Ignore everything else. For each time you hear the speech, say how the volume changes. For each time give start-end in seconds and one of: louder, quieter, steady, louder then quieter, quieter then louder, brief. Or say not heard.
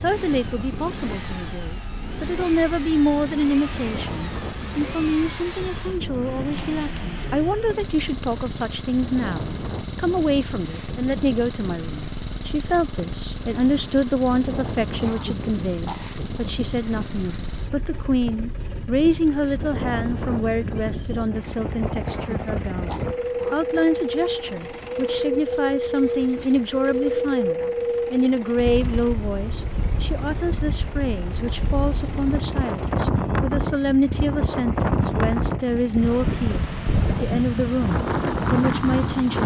0.0-39.4 steady.